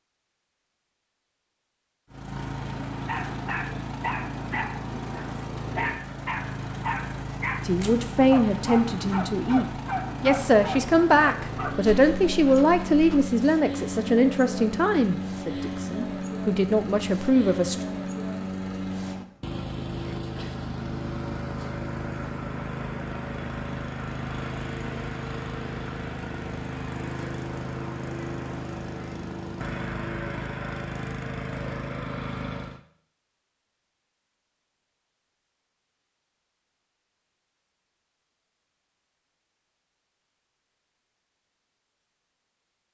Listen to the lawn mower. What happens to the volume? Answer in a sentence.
The loudness of the lawn mower stays about the same.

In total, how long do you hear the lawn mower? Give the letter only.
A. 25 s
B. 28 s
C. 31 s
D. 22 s
C.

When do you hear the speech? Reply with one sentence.
You can hear the speech from 7.7 to 17.8 s.